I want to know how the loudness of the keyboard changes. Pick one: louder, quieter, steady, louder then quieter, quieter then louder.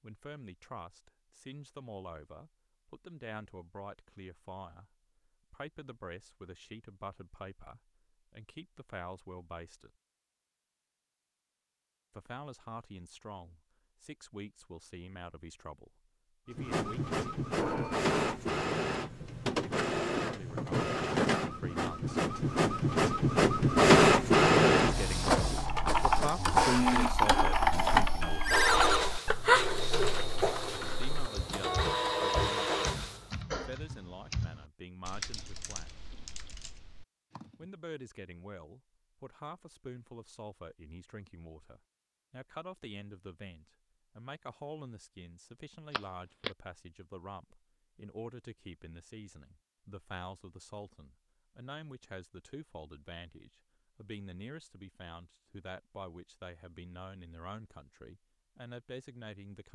quieter.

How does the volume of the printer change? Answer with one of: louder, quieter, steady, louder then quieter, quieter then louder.
louder then quieter.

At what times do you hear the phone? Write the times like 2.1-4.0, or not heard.
17.6-18.4, 28.4-29.0, 45.9-46.5.